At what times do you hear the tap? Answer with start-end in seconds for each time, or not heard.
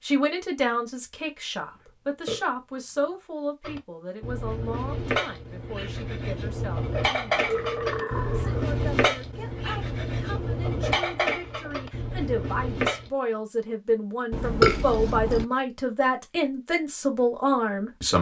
not heard.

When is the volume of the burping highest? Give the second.
15 s.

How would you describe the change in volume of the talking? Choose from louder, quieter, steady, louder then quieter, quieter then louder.
quieter then louder.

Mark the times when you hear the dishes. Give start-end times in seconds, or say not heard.
3.6-13.1.